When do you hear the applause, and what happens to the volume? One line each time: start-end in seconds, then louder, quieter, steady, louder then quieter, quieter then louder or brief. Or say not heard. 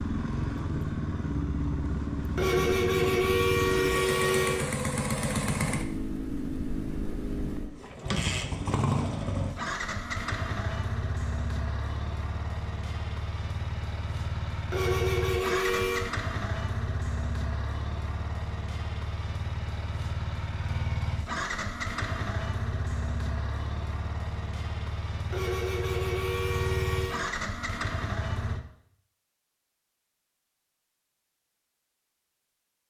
not heard.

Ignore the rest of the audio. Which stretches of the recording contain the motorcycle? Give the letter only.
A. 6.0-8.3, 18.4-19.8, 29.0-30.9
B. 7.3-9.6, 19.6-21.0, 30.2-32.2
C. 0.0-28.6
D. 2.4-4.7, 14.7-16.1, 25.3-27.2
C.